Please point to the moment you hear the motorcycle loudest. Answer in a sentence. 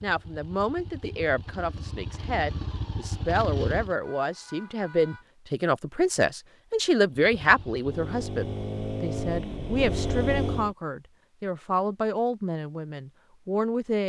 The volume of the motorcycle peaks at 10 seconds.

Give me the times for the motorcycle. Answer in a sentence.
The motorcycle can be heard from 0.0 to 4.0 s and from 7.3 to 10.8 s.